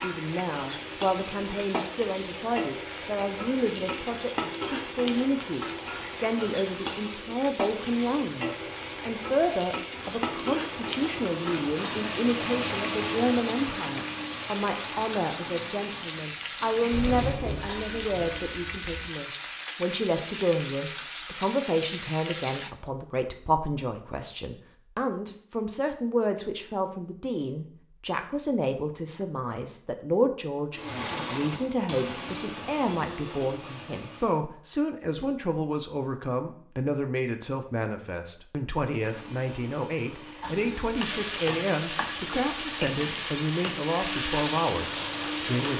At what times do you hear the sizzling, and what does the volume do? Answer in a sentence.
You can hear the sizzling from 0.0 to 22.7 s, at a steady volume; and from 40.4 to 45.7 s, at a steady volume.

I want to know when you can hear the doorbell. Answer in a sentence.
You can hear the doorbell from 16.9 to 19.1 s.